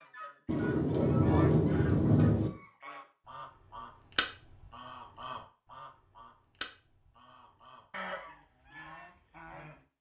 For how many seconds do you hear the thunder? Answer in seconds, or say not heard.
2 s.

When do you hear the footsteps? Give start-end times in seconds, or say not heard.
not heard.